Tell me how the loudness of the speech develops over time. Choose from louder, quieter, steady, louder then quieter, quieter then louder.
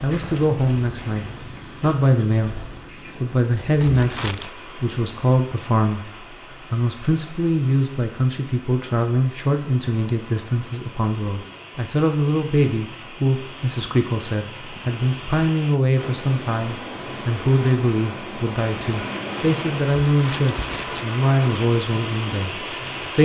steady.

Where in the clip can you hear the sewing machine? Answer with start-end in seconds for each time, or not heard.
not heard.